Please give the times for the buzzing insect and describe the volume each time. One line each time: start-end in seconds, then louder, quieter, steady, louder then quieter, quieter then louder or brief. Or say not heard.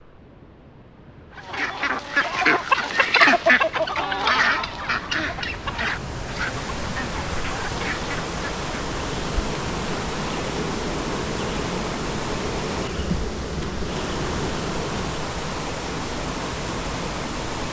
9.0-15.2 steady.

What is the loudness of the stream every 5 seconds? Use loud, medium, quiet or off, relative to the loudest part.
quiet, loud, loud, loud.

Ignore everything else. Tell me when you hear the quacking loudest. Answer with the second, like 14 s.
3 s.